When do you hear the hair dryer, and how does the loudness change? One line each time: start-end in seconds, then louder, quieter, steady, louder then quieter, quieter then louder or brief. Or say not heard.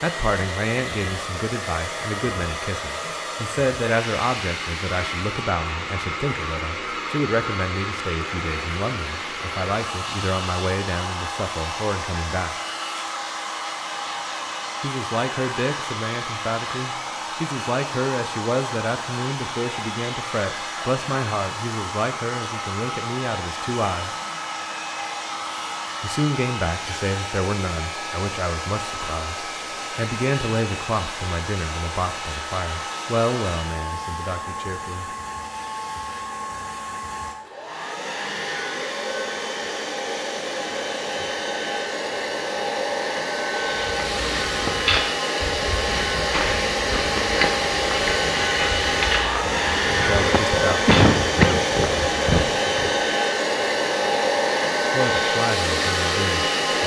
0.0-56.8 louder.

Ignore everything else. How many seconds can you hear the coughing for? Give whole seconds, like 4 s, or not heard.
2 s.